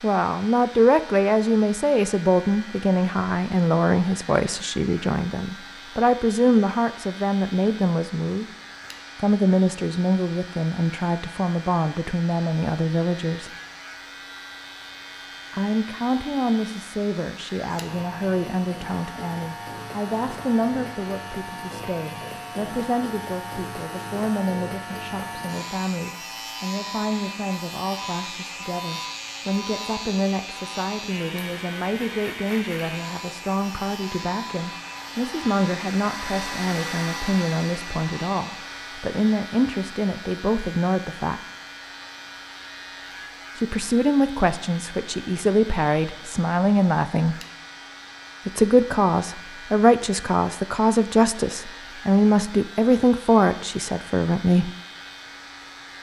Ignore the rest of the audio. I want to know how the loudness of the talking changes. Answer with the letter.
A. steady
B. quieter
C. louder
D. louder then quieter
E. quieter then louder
E.